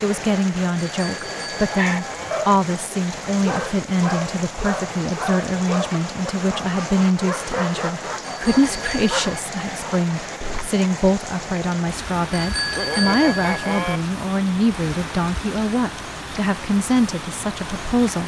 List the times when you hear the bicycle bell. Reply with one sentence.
You can hear the bicycle bell from 1.0 to 2.5 s, from 8.2 to 9.4 s and from 12.3 to 14.0 s.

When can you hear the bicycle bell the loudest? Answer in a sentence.
The loudest moment of the bicycle bell is at 13 seconds.